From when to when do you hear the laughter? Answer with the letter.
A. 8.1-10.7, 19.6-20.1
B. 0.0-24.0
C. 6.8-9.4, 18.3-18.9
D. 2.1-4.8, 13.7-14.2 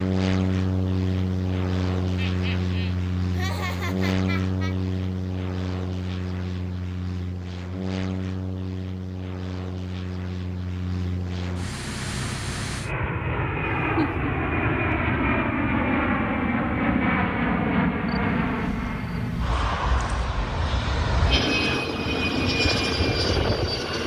D.